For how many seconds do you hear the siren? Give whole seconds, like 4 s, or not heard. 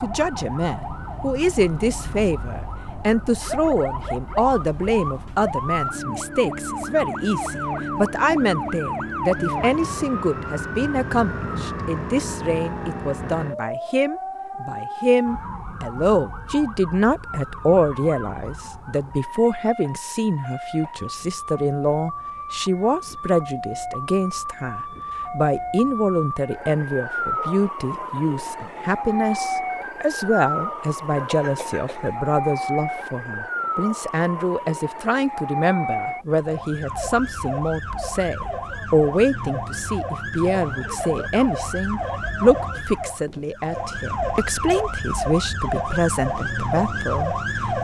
48 s.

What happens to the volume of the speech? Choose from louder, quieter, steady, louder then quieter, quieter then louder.
steady.